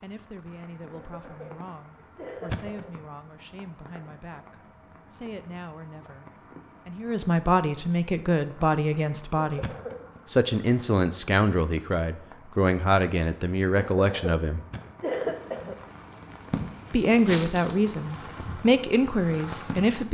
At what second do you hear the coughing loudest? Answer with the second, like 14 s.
15 s.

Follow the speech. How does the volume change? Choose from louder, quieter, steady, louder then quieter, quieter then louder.
louder.